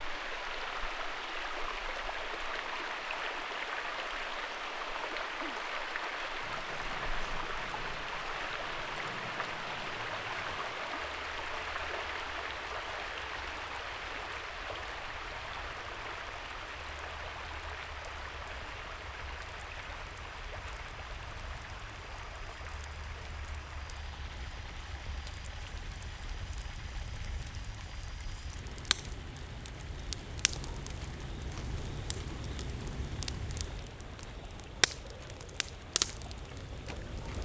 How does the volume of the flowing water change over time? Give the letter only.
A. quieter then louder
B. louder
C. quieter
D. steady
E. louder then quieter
C.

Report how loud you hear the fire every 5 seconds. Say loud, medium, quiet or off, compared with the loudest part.
off, quiet, quiet, quiet, quiet, medium, loud, loud.